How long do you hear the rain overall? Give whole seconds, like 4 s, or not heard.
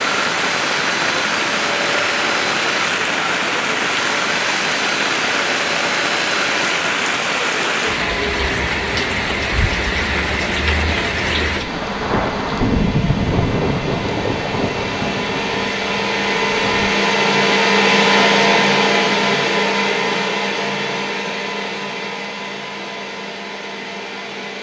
17 s.